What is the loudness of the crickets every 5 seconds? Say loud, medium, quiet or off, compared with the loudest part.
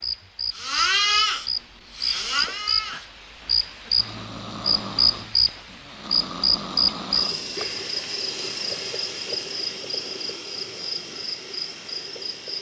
loud, loud, medium.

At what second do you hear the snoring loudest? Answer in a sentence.
The volume of the snoring peaks at 1 second.